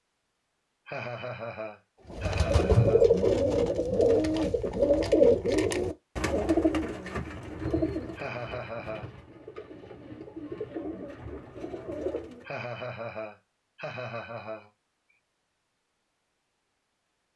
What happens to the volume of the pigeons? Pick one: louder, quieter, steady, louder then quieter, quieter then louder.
quieter then louder.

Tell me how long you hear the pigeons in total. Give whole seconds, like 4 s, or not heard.
10 s.